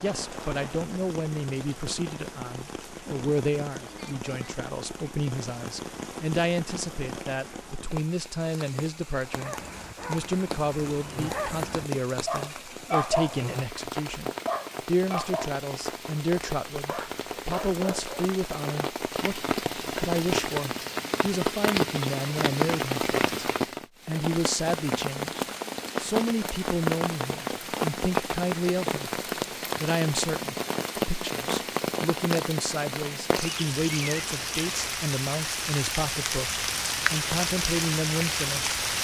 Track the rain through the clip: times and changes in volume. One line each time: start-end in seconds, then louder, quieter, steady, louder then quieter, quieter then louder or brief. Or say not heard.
0.0-38.9 louder.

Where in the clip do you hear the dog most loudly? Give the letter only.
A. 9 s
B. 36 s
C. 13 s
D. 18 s
C.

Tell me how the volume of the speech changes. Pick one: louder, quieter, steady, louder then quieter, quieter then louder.
steady.